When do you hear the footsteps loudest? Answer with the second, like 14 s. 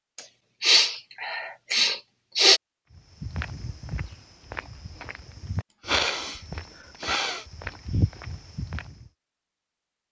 8 s.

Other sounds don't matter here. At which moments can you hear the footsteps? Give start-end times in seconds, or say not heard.
2.9-9.1.